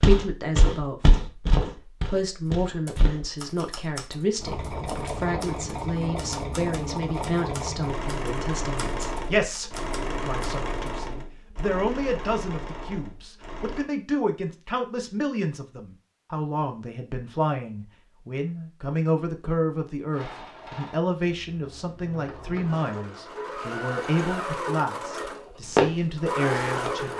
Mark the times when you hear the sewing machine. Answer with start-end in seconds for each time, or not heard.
4.3-13.9, 20.1-27.1.